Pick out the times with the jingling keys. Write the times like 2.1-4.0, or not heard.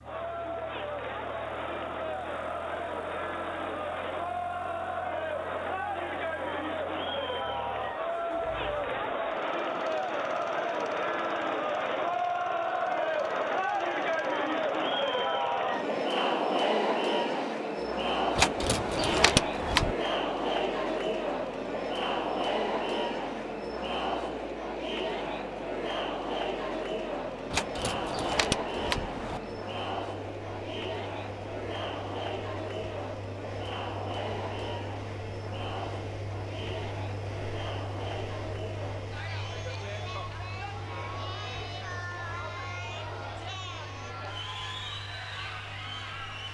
18.4-19.9, 27.5-29.4.